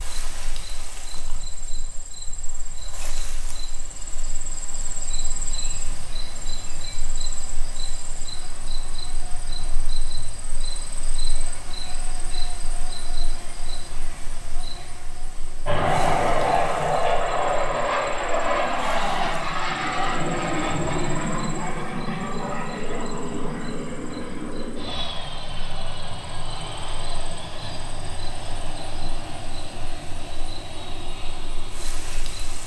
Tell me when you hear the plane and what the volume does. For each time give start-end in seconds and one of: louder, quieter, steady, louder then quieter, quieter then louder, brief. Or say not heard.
15.7-32.6 quieter.